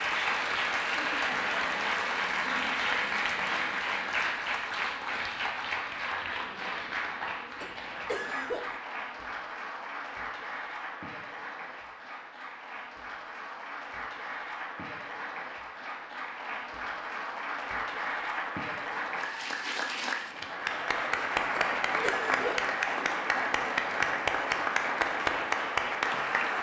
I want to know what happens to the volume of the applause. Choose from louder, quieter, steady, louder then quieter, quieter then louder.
quieter then louder.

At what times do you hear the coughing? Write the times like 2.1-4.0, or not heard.
7.6-8.8, 21.6-22.7.